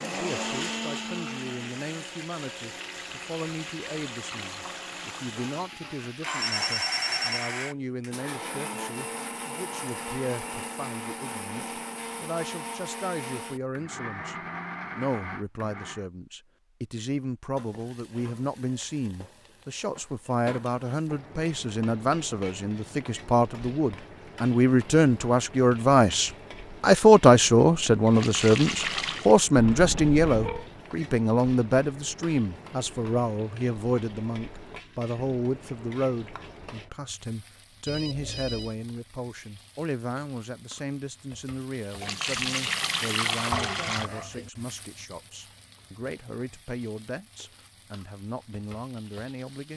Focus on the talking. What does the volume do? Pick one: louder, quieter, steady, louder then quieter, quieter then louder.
louder then quieter.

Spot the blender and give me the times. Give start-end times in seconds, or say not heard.
0.0-16.1.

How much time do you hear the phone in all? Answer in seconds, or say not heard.
3 s.